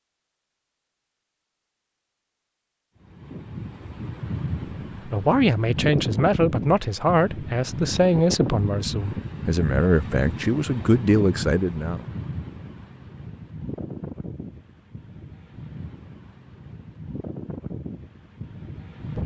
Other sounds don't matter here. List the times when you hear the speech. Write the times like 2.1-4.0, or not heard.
5.0-12.1.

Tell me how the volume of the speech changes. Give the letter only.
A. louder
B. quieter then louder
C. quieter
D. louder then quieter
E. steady
E.